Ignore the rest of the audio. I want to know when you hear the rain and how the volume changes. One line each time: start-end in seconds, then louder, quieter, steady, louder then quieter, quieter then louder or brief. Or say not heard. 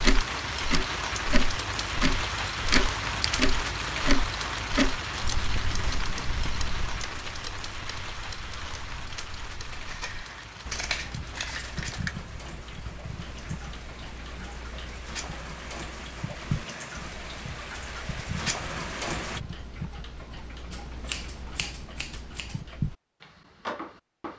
0.0-19.4 quieter then louder.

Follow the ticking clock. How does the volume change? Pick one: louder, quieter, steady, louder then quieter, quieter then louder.
quieter then louder.